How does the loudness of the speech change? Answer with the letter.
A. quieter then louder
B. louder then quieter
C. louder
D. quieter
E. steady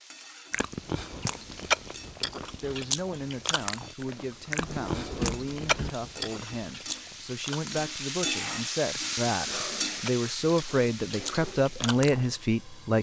C.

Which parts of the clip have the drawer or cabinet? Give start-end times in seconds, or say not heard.
4.6-5.9.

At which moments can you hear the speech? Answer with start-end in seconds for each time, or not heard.
2.5-12.9.